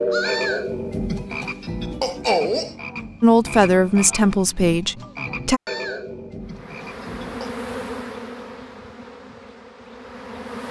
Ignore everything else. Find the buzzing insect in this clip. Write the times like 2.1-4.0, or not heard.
6.4-10.6.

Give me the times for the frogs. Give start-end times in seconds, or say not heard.
0.0-7.5.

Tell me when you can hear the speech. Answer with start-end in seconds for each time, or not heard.
3.2-5.6.